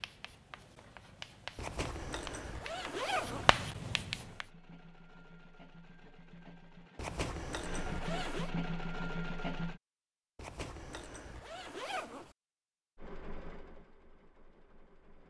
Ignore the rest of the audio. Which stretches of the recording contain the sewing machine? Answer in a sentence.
You can hear the sewing machine from 4.2 to 9.8 s and from 12.9 to 15.2 s.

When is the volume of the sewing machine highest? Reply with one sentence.
The loudest moment of the sewing machine is at 9 seconds.